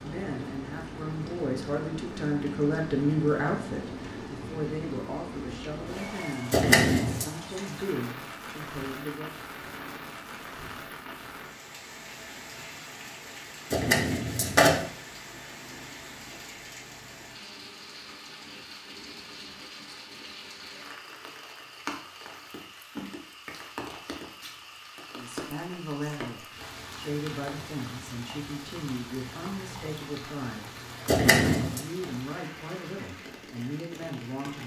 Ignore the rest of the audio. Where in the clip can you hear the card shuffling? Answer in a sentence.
The card shuffling can be heard from 6.5 to 7.2 s, from 13.7 to 14.8 s and from 31.1 to 31.8 s.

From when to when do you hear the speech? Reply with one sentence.
The speech can be heard from 0.0 to 9.3 s, from 25.1 to 30.8 s and from 31.4 to 34.6 s.